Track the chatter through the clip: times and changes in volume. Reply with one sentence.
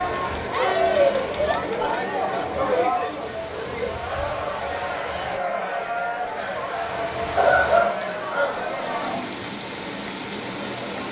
The chatter can be heard from 0.0 to 9.2 s, getting quieter.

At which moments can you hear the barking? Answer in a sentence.
You can hear the barking from 7.3 to 9.3 s.